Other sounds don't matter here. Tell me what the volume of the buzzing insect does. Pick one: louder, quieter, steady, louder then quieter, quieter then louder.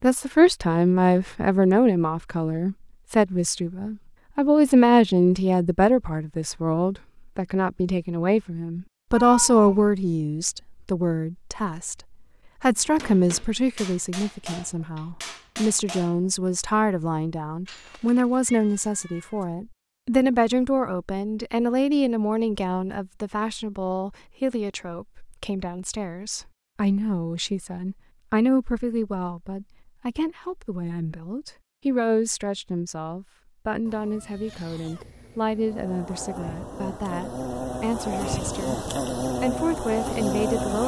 louder.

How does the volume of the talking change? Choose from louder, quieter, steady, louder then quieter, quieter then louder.
quieter.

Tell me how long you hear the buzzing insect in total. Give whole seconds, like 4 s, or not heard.
5 s.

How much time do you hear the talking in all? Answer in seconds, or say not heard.
41 s.